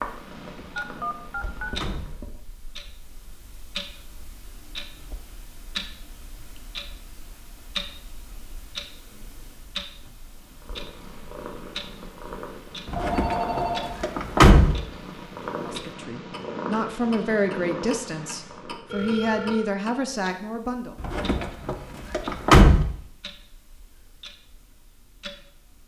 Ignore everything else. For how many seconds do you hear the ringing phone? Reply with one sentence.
The ringing phone can be heard for 3 seconds in total.